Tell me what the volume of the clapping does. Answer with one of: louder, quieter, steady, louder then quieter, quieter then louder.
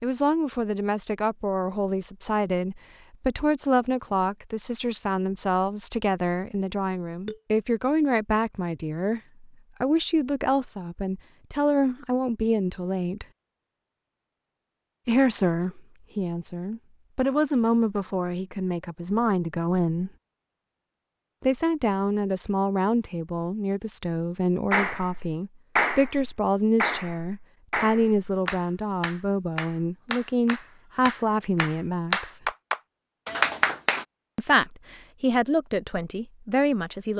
quieter then louder.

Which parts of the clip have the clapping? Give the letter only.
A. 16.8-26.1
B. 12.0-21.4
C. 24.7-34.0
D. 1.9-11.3
C.